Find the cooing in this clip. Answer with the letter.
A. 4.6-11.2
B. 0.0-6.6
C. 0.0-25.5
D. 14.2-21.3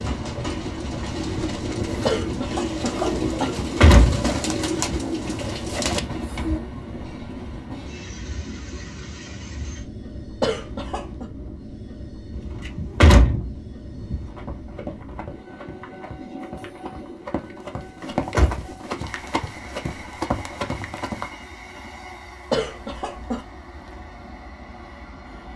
B.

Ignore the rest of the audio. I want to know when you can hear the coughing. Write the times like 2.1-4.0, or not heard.
2.0-3.5, 10.4-11.2, 22.5-23.4.